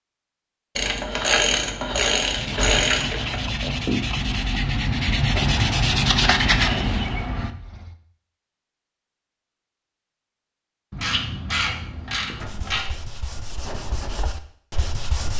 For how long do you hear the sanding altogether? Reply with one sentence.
You can hear the sanding for 9 seconds altogether.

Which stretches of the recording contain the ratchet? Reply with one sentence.
You can hear the ratchet from 0.8 to 3.4 s and from 10.9 to 12.8 s.